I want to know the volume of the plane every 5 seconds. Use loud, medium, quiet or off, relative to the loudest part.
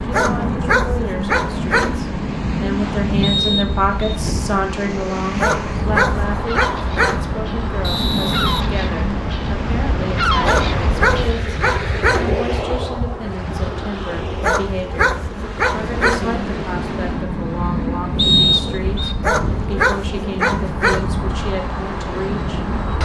loud, loud, medium, loud, loud.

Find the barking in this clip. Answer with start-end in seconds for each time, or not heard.
0.1-2.0, 5.3-7.2, 10.4-12.3, 14.4-16.3, 19.2-21.1.